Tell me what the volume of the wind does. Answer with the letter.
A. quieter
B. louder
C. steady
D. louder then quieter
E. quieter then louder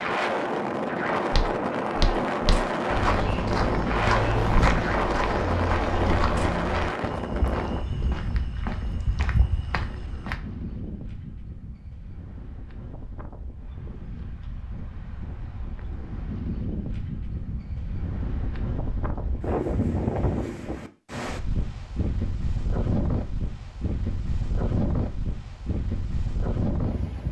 E.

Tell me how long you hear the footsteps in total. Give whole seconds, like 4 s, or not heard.
9 s.